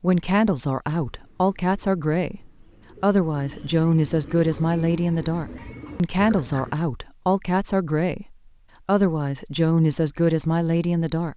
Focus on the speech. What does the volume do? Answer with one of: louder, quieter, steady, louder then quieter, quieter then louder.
steady.